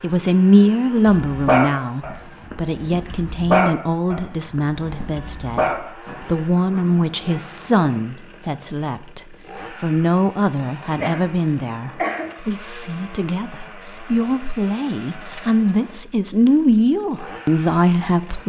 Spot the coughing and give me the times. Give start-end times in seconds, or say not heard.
11.0-12.3.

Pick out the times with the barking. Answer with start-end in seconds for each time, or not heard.
1.2-7.9.